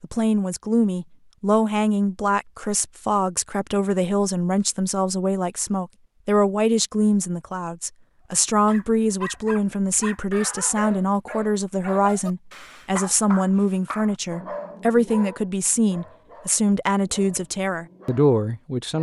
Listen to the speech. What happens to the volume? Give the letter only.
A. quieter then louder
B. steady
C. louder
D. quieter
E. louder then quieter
B.